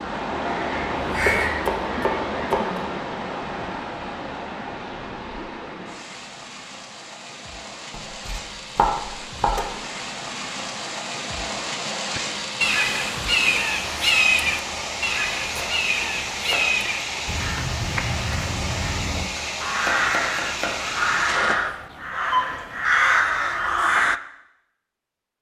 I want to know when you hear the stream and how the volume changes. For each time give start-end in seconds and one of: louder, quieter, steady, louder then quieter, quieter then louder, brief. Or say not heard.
0.0-21.6 quieter then louder.